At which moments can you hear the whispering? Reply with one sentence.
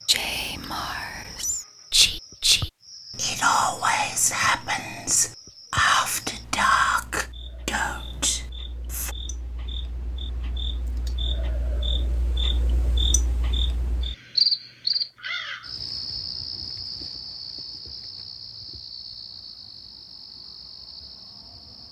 You can hear the whispering from 0.1 to 9.2 s.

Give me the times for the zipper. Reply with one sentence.
You can't hear the zipper here.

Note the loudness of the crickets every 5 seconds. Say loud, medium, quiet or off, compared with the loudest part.
quiet, quiet, loud, medium, quiet.